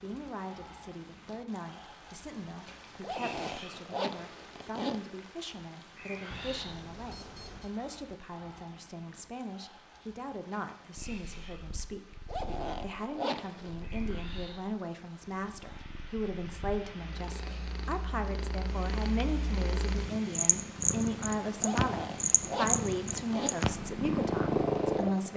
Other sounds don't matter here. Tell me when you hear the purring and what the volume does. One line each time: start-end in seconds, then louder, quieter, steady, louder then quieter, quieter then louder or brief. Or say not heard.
10.9-25.3 louder.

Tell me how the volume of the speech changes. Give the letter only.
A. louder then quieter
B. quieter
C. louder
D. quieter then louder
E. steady
C.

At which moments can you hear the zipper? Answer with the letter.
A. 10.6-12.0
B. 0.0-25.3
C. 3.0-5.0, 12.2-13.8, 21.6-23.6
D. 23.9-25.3
C.